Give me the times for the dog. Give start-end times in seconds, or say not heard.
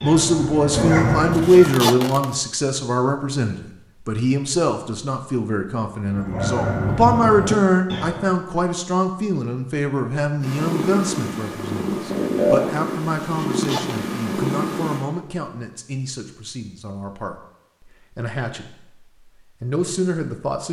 0.0-1.8, 6.0-8.3.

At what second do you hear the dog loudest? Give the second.
1 s.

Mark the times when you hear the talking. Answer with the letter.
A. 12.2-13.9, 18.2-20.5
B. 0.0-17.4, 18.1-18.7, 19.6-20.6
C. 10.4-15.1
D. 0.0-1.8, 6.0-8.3
B.